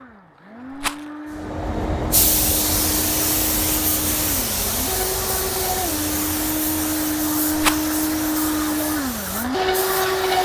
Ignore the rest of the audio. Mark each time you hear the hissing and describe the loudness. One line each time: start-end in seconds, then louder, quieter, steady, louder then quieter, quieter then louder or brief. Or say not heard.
1.4-10.3 quieter.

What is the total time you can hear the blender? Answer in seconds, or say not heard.
10 s.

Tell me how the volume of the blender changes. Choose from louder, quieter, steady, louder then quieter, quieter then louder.
louder.